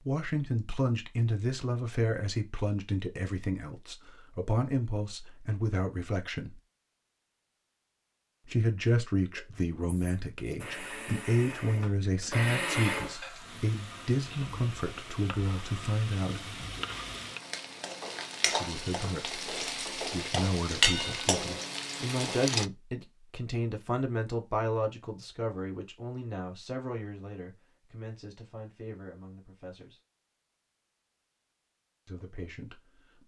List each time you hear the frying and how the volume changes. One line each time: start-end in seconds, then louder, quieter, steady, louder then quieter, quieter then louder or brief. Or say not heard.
12.9-22.7 louder.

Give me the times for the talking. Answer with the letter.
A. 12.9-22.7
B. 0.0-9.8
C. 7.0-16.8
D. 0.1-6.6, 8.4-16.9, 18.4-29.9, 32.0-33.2
D.